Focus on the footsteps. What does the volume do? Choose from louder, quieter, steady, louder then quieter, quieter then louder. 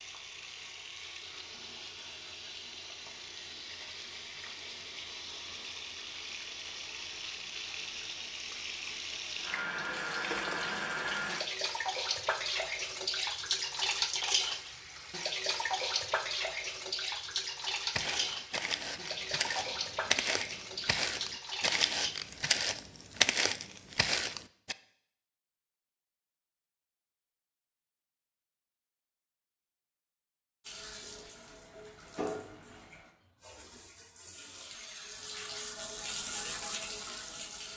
louder.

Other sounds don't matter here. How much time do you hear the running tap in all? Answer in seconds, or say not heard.
29 s.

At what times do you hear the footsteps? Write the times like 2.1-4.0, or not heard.
17.9-24.8.